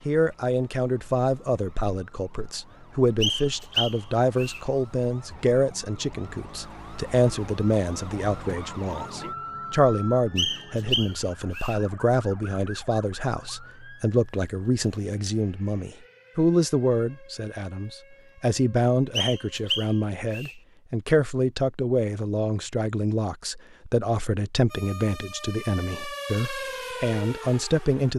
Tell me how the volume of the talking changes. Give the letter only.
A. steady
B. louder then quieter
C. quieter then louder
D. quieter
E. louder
A.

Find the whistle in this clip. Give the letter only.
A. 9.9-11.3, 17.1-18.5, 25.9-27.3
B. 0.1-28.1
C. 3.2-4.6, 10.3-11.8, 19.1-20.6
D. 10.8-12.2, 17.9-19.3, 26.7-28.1
C.